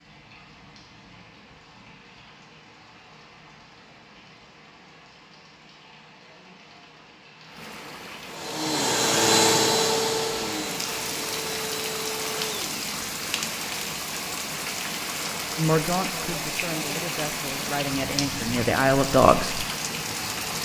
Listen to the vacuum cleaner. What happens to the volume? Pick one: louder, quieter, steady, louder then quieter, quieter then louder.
quieter.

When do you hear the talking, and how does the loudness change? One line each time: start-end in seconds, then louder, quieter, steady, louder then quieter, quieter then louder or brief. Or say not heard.
15.6-19.6 louder.